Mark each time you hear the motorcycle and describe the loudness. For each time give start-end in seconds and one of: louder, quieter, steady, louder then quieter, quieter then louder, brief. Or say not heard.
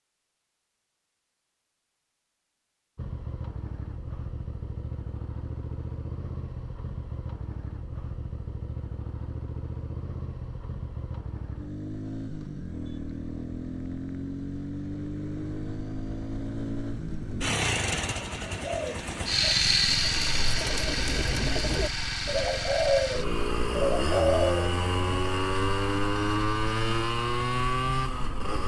3.0-28.6 louder.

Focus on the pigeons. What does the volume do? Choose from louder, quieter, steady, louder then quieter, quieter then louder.
louder.